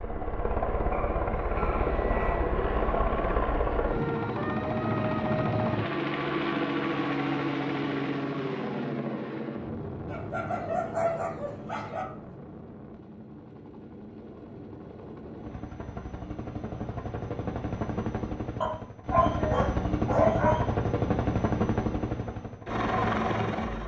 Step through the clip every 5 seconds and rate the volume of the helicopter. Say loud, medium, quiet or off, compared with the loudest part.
loud, loud, quiet, medium, loud.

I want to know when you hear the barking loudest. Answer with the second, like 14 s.
20 s.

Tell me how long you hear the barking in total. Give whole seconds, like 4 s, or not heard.
6 s.